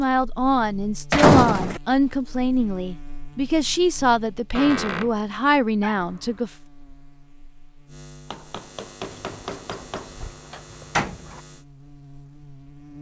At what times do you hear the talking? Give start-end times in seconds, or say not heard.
0.0-6.5.